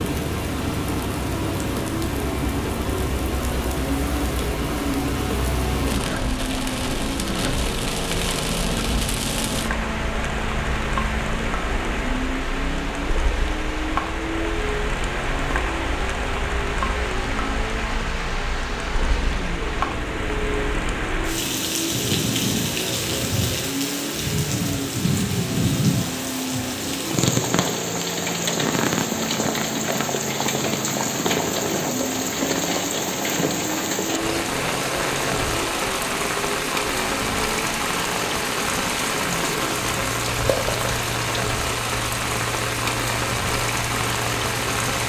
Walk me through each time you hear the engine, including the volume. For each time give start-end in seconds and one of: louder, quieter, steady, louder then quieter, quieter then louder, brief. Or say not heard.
0.0-45.0 steady.